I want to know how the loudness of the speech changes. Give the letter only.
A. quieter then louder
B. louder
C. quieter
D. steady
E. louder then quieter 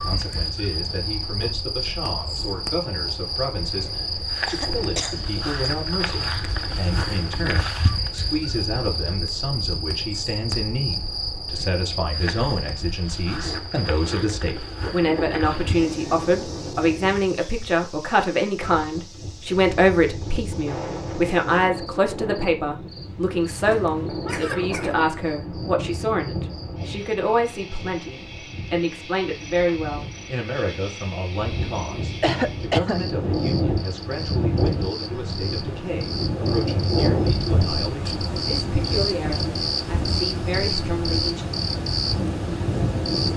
E.